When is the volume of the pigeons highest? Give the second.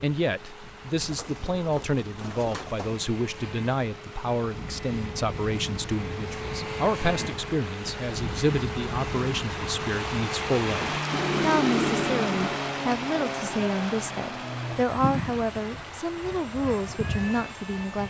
12 s.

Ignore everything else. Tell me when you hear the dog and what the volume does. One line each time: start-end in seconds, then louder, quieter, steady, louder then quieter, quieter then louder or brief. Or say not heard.
not heard.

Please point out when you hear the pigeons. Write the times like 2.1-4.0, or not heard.
1.0-3.0, 11.1-12.7.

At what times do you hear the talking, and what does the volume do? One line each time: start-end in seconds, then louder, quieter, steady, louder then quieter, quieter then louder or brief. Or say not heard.
0.0-18.0 steady.